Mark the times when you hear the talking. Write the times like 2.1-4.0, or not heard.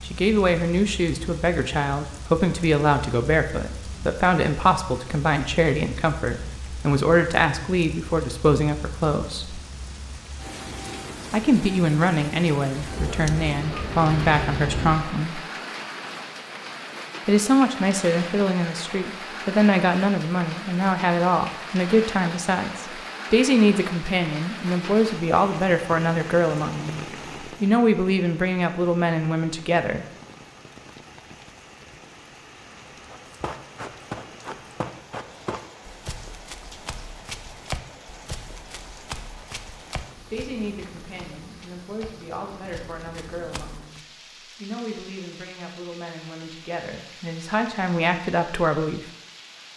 0.0-9.6, 11.3-15.4, 17.2-27.0, 27.6-30.1, 40.3-49.0.